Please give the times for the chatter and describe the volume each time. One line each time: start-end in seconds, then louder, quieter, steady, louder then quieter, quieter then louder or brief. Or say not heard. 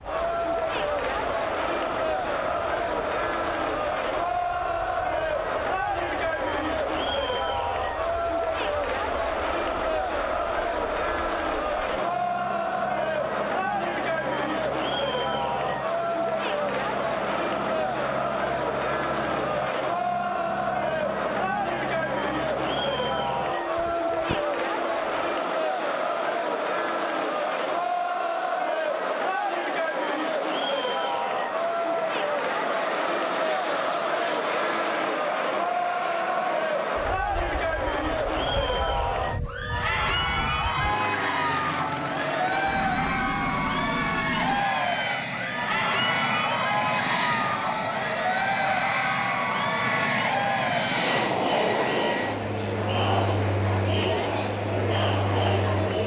0.0-56.0 steady.